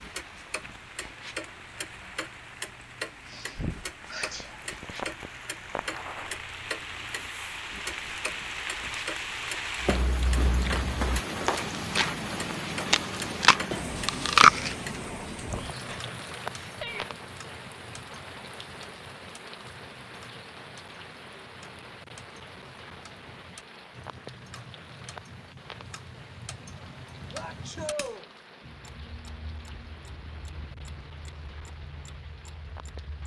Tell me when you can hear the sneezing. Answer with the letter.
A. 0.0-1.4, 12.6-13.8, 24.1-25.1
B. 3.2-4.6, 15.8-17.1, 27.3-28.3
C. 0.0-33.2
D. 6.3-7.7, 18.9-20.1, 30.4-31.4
B.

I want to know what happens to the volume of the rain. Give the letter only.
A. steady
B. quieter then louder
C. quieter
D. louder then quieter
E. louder
D.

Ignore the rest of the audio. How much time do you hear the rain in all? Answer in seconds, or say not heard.
33 s.